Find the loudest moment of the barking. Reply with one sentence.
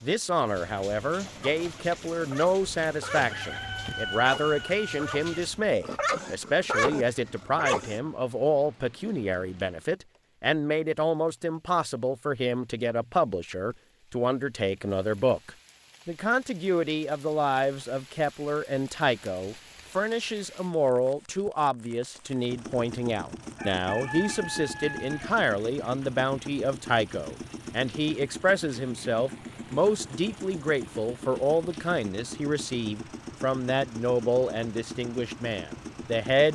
The loudest moment of the barking is at 7 seconds.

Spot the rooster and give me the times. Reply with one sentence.
You can hear the rooster from 3.1 to 5.5 s and from 23.6 to 25.4 s.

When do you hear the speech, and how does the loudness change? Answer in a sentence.
The speech can be heard from 0.0 to 36.5 s, at a steady volume.